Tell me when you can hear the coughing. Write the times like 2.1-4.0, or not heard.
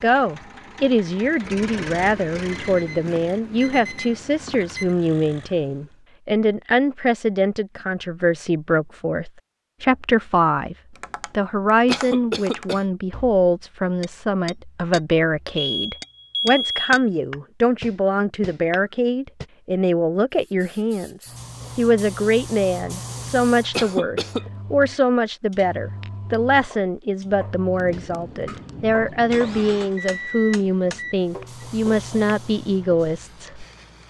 11.8-12.8, 23.7-24.4.